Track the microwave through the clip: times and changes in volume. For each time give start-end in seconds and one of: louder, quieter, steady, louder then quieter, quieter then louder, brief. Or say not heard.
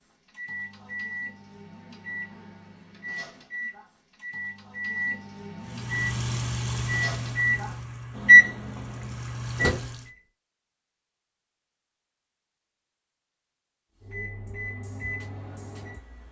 0.0-10.2 louder
14.0-16.2 brief.